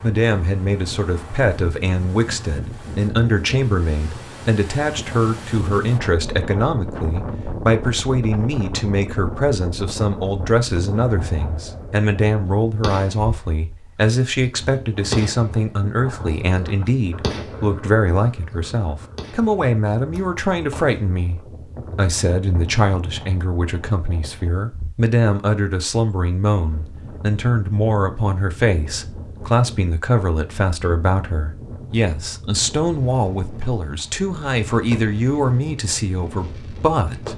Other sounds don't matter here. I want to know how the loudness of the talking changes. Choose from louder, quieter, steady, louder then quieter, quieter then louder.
steady.